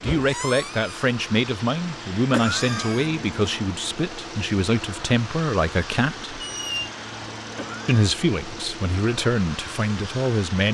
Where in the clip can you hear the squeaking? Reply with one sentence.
The squeaking can be heard from 0.0 to 1.1 s and from 6.4 to 6.9 s.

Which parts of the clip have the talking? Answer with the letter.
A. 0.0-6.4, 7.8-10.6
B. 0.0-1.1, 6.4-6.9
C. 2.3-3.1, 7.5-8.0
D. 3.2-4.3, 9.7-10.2
A.